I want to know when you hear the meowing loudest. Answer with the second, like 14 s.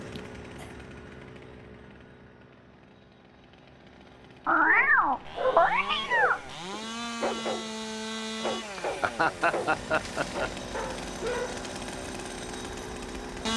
5 s.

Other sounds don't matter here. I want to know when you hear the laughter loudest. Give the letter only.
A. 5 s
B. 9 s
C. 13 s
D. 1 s
B.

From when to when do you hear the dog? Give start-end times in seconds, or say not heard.
4.6-11.7.